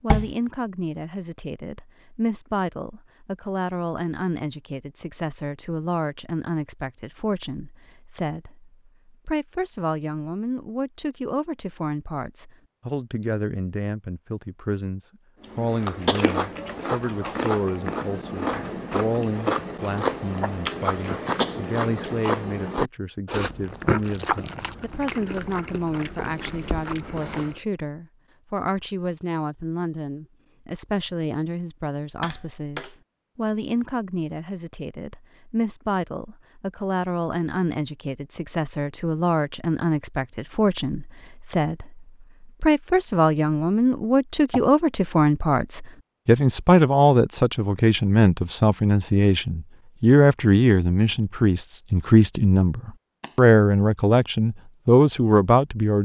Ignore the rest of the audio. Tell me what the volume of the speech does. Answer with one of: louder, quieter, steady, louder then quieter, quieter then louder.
louder.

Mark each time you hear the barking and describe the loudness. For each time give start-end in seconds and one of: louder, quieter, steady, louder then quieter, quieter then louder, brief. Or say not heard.
not heard.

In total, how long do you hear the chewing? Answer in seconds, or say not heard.
12 s.